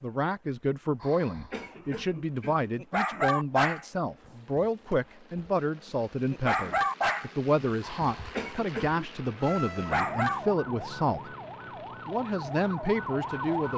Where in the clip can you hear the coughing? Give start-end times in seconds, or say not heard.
0.9-2.6, 7.8-9.1.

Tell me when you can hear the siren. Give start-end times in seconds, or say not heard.
9.4-13.7.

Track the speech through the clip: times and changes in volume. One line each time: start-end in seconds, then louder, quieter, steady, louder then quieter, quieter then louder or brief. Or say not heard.
0.0-11.3 steady
12.1-13.7 brief.